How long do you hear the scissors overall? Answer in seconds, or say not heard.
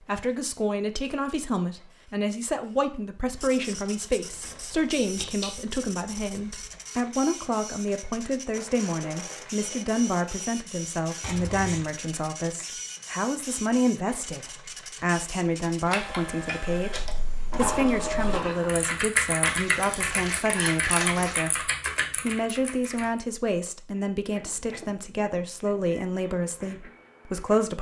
5 s.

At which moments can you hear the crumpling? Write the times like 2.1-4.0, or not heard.
8.5-10.4, 17.5-18.6.